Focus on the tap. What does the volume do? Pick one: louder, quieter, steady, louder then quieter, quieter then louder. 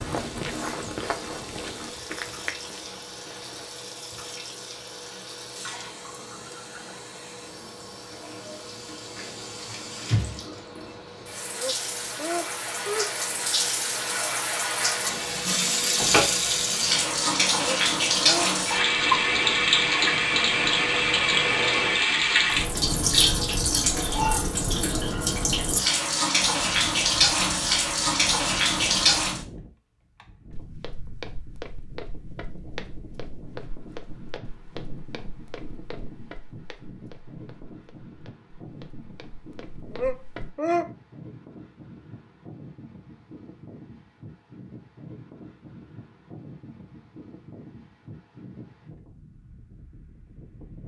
louder.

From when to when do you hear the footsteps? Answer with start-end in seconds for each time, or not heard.
0.0-3.8, 30.5-40.5.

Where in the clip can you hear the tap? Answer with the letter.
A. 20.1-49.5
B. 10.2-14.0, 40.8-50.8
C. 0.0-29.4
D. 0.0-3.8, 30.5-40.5
C.